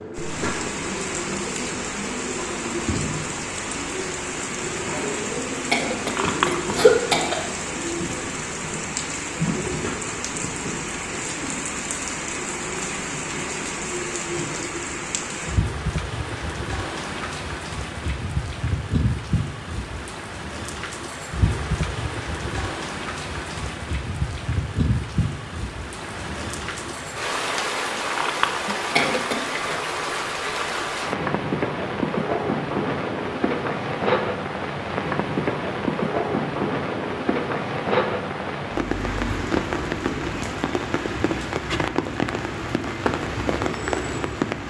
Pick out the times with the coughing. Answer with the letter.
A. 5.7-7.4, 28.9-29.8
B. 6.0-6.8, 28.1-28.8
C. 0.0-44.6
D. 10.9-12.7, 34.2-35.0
A.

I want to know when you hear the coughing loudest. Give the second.
7 s.